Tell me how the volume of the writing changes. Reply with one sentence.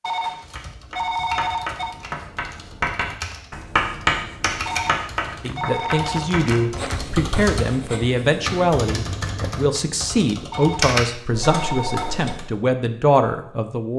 The loudness of the writing goes up, then down.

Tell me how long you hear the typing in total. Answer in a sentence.
The typing can be heard for 12 seconds in total.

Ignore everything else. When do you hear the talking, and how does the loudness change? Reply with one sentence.
You can hear the talking from 5.4 to 13.9 s, at a steady volume.